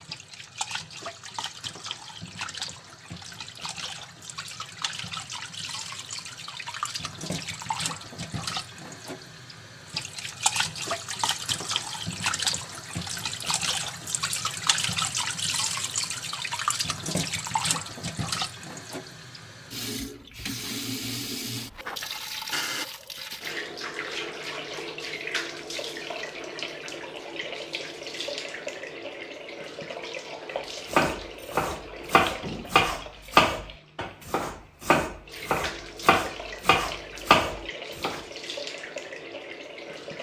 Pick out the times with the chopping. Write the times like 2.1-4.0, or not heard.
30.9-38.2.